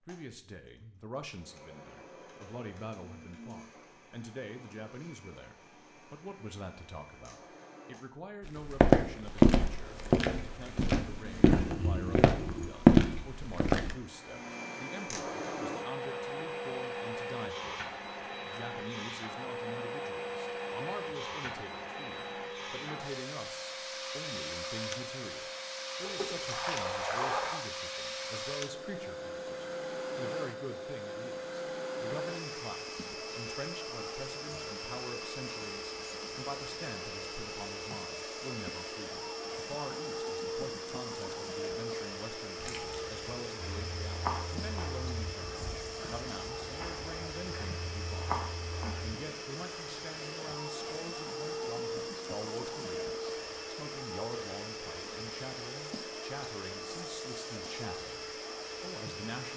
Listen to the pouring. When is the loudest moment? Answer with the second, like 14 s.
27 s.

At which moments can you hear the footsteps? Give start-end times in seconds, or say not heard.
8.4-13.9, 43.8-49.1.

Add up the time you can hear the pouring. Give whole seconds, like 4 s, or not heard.
4 s.